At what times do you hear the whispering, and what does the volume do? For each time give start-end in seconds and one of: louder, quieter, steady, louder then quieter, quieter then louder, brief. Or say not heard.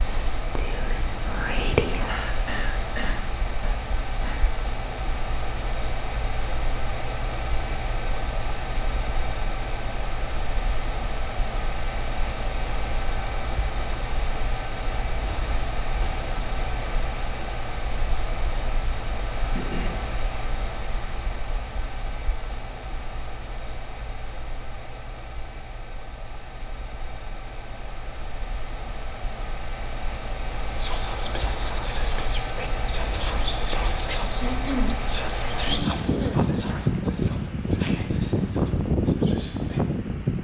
0.0-2.2 brief
30.7-39.9 quieter.